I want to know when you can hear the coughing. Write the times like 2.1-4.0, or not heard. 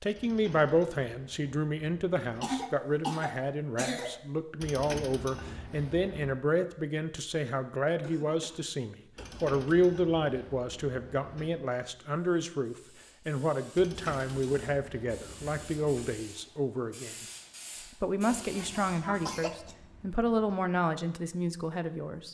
2.4-4.2, 8.0-9.9, 18.4-19.8.